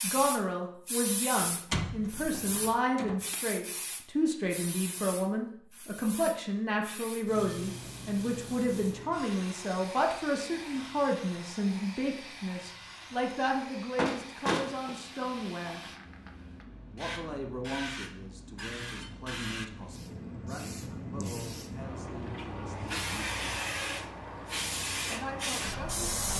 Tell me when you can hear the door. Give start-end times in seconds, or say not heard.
1.5-3.4, 13.9-14.9.